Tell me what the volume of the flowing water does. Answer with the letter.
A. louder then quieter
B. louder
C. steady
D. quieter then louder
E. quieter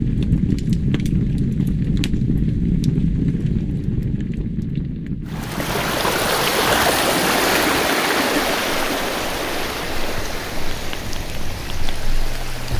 E.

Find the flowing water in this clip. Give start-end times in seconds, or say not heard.
5.2-12.7.